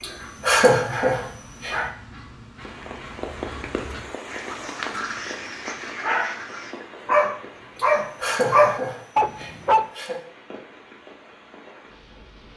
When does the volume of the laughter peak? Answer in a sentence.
The volume of the laughter peaks at 1 second.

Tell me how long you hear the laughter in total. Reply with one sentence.
You can hear the laughter for 4 seconds altogether.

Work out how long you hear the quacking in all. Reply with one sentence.
The quacking can be heard for 7 seconds in total.